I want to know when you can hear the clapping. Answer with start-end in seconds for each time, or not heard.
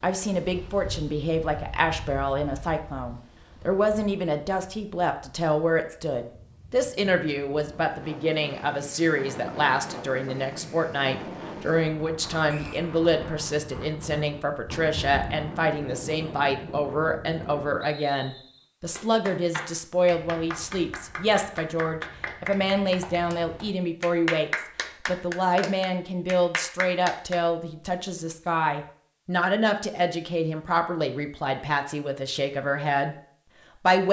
18.9-27.4.